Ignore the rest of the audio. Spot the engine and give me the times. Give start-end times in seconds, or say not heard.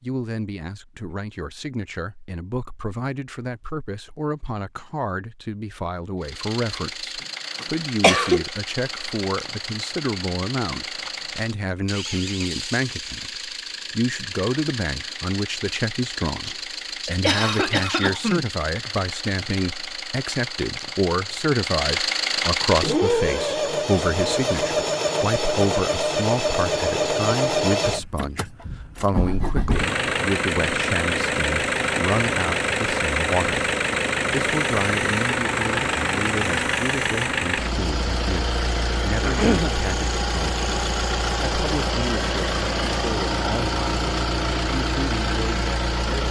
6.2-46.2.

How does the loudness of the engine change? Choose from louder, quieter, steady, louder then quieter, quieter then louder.
louder.